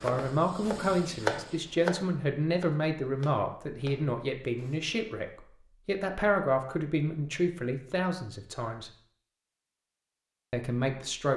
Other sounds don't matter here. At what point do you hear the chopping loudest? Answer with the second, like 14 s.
1 s.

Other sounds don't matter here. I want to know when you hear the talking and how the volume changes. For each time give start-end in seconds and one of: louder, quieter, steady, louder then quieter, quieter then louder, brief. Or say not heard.
0.0-8.9 steady
10.5-11.3 brief.